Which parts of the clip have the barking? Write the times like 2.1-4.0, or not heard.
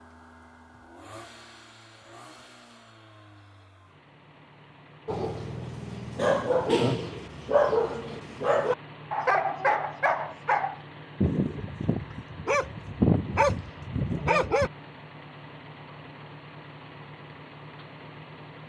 5.0-14.7.